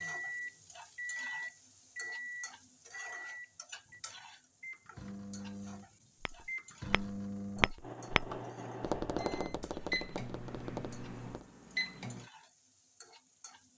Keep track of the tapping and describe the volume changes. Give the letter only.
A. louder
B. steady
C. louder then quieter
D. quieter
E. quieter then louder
C.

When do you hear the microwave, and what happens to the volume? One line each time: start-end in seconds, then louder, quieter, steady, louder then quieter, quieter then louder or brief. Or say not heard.
0.0-12.3 quieter then louder.